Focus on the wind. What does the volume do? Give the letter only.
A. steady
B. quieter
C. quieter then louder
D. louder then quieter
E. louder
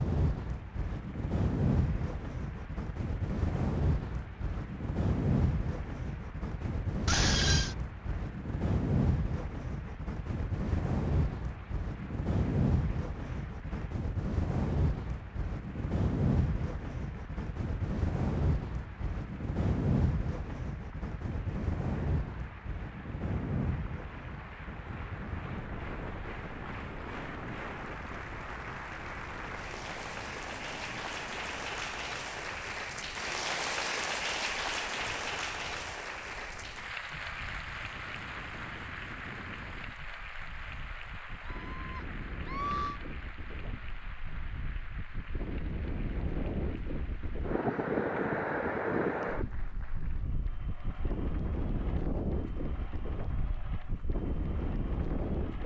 C.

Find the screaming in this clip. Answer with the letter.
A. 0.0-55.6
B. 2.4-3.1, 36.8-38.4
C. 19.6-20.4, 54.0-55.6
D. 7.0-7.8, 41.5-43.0
D.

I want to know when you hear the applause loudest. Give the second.
34 s.